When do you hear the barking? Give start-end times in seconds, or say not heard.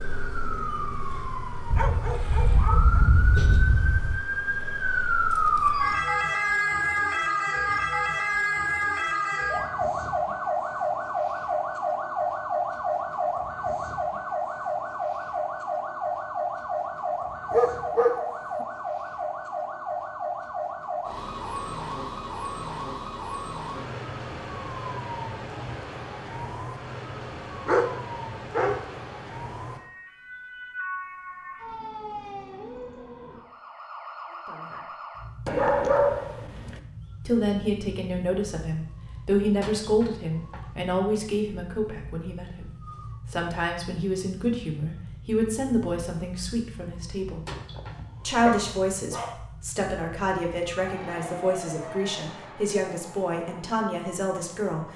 1.7-4.2, 17.5-18.2, 27.6-28.9, 35.5-36.8, 47.5-49.4.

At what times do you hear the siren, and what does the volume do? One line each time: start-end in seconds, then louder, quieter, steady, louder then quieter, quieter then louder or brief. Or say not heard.
0.0-54.9 quieter.